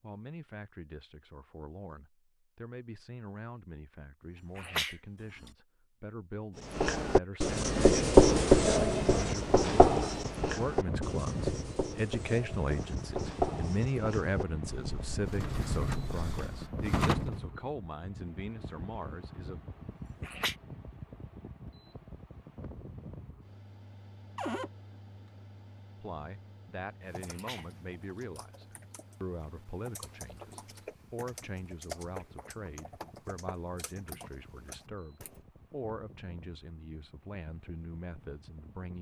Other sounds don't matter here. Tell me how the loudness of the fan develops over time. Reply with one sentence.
The loudness of the fan goes down.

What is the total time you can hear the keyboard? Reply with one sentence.
The keyboard can be heard for 8 seconds in total.